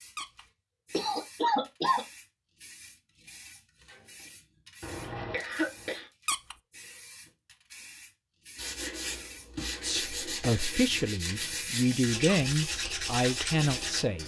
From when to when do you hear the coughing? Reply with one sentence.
You can hear the coughing from 0.9 to 2.0 s, from 4.8 to 6.0 s and from 10.2 to 10.8 s.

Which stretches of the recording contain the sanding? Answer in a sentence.
You can hear the sanding from 8.6 to 14.2 s.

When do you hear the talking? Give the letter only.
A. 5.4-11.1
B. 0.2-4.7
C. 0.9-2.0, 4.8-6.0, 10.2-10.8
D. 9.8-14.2
D.